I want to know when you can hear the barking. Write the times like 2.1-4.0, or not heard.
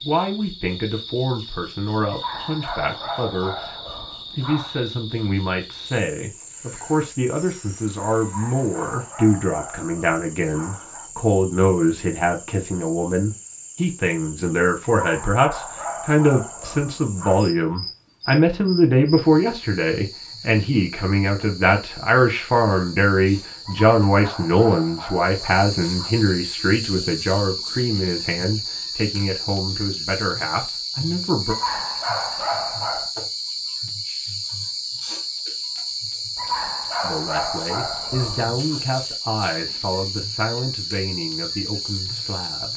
2.1-4.8, 8.2-11.1, 14.9-17.4, 23.6-26.1, 31.4-33.1, 36.4-38.8.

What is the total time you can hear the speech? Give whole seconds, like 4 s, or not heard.
37 s.